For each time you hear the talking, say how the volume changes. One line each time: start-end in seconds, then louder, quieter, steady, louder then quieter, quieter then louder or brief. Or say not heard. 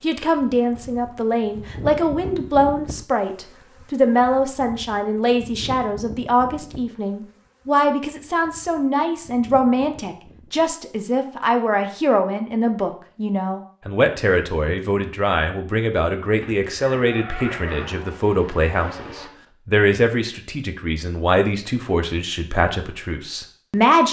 0.0-24.0 steady.